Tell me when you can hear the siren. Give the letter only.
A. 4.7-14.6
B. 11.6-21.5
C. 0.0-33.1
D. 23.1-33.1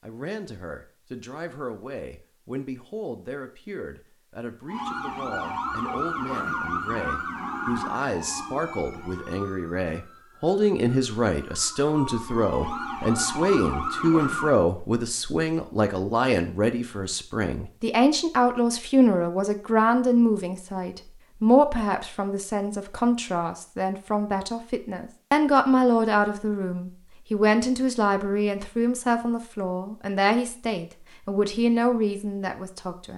A.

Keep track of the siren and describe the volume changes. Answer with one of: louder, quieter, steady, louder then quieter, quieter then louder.
quieter then louder.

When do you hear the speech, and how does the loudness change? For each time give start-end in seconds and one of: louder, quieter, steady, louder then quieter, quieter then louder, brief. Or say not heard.
0.0-33.1 louder.